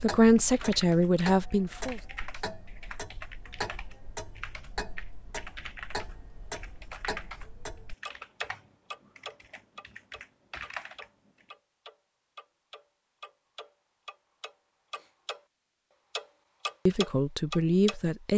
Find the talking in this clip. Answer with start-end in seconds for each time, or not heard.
0.0-2.0, 16.9-18.3.